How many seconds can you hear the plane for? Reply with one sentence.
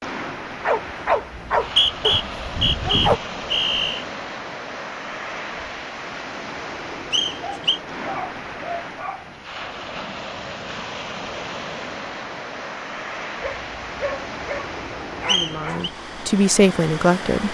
You can't hear the plane here.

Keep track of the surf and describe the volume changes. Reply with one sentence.
The loudness of the surf stays about the same.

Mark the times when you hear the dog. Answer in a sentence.
The dog can be heard from 0.7 to 3.2 s, from 7.4 to 9.2 s and from 13.4 to 15.9 s.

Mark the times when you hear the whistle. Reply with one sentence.
You can hear the whistle from 1.4 to 4.0 s, from 7.1 to 7.8 s and from 15.2 to 15.9 s.